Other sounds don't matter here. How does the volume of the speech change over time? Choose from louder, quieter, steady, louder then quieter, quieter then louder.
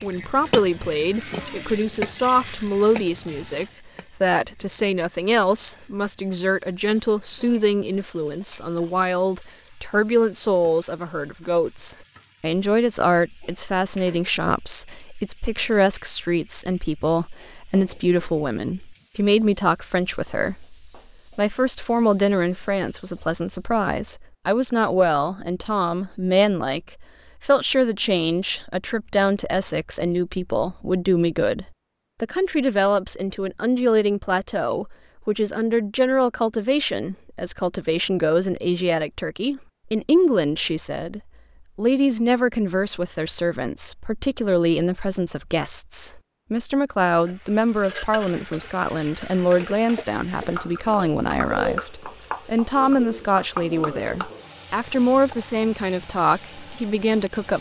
steady.